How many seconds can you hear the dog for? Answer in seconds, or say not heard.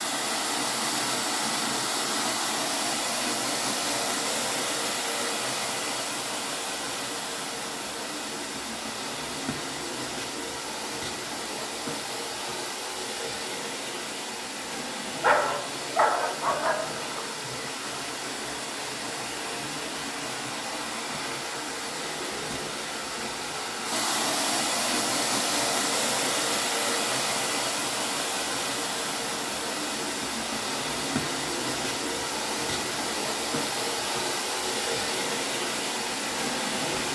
2 s.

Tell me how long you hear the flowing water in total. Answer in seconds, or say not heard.
37 s.